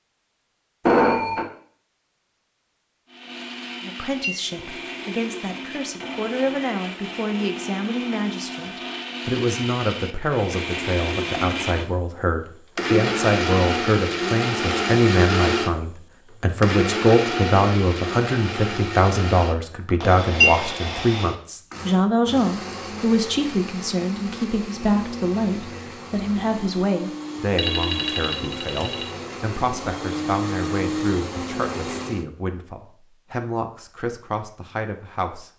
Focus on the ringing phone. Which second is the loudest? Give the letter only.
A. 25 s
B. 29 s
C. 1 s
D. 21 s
C.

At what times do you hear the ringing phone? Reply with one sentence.
The ringing phone can be heard from 0.8 to 1.4 s and from 27.6 to 29.1 s.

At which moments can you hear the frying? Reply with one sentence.
The frying can't be heard in this clip.